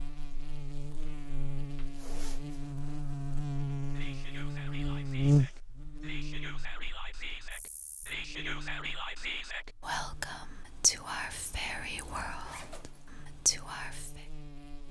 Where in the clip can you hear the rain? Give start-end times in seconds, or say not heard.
not heard.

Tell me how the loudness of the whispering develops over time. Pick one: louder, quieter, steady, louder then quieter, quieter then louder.
louder.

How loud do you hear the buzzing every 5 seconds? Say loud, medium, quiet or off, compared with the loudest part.
medium, loud, quiet.